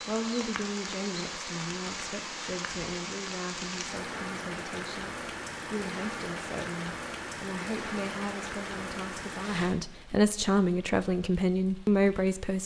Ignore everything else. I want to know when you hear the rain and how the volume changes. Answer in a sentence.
You can hear the rain from 0.0 to 12.6 s, getting quieter.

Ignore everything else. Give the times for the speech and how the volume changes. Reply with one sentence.
The speech can be heard from 0.0 to 12.6 s, getting louder.